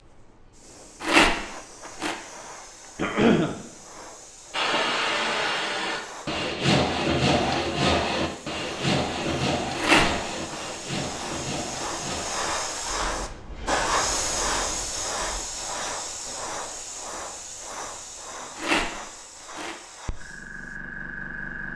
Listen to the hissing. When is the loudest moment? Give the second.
14 s.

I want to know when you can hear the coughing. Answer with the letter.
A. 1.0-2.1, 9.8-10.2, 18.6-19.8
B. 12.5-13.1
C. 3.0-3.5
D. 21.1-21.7
C.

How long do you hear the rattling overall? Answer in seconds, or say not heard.
3 s.